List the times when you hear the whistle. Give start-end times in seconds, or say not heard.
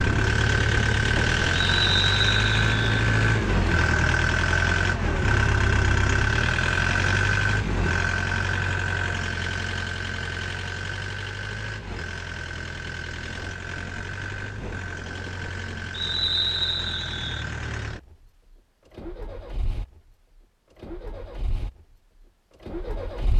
1.6-2.9, 15.9-17.4.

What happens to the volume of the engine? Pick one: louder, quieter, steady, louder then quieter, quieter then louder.
quieter.